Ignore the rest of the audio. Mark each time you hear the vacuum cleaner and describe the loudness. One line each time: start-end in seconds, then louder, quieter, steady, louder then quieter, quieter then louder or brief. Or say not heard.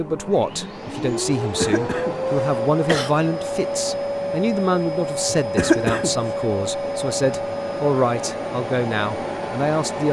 0.0-10.0 steady.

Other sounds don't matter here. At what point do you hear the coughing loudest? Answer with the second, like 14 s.
6 s.